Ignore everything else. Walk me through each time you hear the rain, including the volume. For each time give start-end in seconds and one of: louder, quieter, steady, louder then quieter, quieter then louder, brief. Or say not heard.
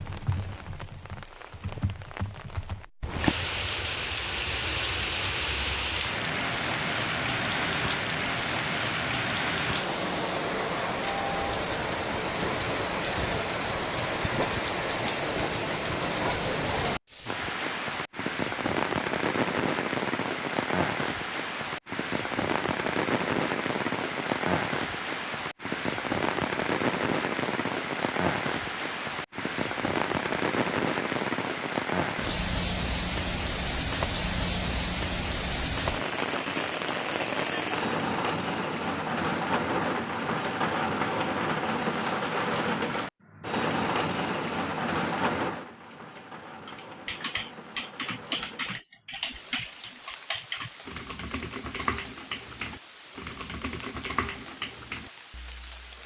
0.0-56.0 quieter.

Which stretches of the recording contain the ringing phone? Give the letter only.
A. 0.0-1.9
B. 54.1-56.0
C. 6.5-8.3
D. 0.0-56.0
C.